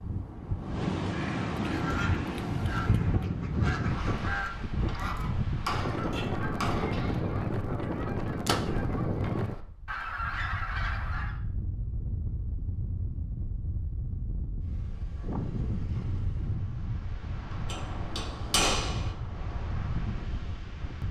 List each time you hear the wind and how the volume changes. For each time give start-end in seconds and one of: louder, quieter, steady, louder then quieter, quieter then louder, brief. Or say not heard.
0.0-21.0 quieter.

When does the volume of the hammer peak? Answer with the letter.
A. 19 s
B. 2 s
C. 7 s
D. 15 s
A.